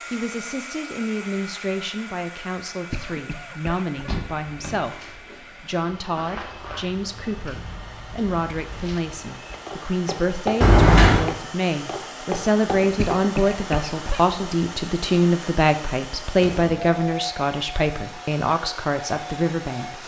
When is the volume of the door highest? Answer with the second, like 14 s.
11 s.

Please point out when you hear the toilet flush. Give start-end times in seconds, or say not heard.
not heard.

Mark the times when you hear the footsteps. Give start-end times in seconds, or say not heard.
4.7-13.6.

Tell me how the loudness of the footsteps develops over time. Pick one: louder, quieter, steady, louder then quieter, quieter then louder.
louder.